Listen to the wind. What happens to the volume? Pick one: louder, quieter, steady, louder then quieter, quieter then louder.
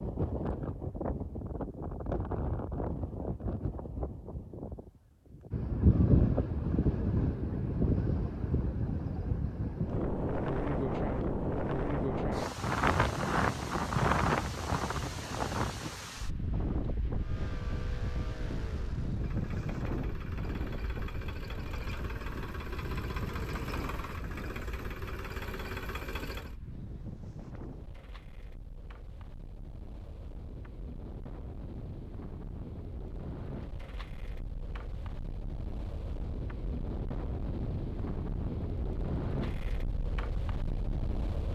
quieter then louder.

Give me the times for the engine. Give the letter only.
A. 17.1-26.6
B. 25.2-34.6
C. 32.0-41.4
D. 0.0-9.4
A.